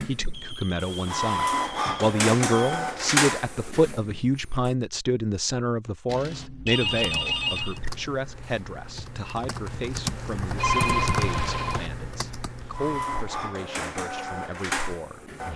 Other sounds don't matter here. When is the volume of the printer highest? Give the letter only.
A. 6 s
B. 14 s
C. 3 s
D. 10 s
C.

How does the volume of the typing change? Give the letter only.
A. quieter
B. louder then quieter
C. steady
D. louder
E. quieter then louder
B.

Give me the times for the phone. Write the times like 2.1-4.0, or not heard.
0.3-2.8, 6.0-7.8, 10.6-11.9.